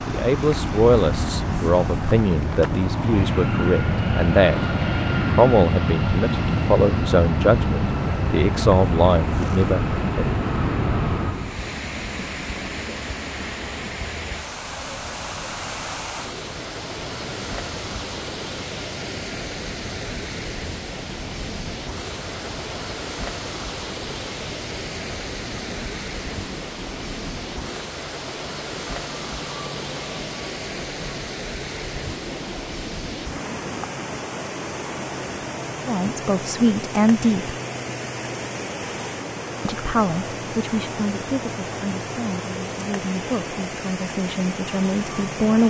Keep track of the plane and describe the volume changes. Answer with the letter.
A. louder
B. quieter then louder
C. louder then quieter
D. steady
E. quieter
E.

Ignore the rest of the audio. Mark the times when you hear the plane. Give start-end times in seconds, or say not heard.
0.0-45.6.